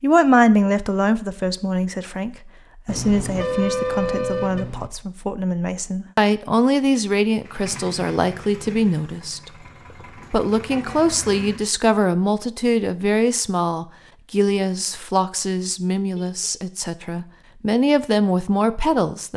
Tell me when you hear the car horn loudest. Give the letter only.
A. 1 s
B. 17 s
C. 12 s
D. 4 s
D.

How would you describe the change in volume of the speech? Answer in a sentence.
The volume of the speech stays about the same.